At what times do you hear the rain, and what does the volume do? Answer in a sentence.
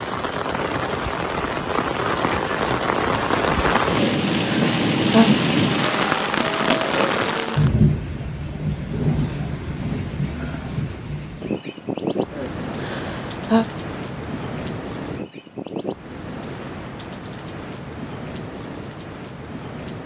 The rain can be heard from 0.0 to 20.0 s, getting quieter.